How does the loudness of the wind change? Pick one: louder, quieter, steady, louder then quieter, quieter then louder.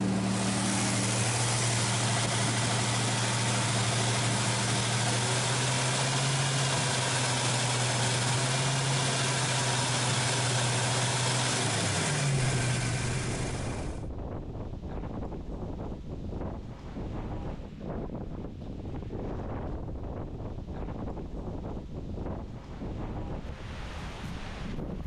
steady.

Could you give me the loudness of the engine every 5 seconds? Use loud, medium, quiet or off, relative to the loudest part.
loud, loud, loud, off, off.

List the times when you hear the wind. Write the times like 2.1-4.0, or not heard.
12.3-25.0.